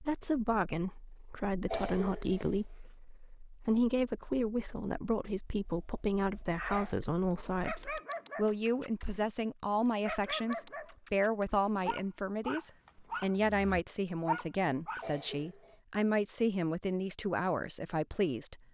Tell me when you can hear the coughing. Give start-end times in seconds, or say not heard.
1.6-2.5, 14.9-15.8.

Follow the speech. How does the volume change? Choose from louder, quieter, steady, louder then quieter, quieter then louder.
steady.